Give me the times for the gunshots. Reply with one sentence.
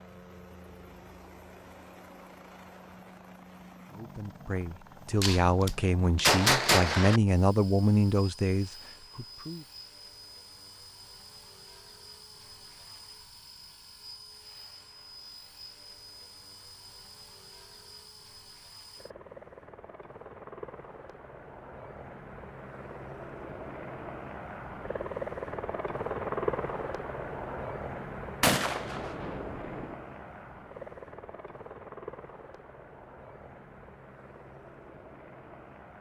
You can hear the gunshots from 5.2 to 7.2 s and from 28.4 to 29.9 s.